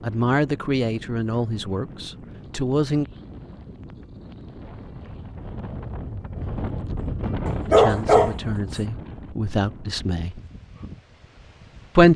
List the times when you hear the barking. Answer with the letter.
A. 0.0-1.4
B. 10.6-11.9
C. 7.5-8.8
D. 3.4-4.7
C.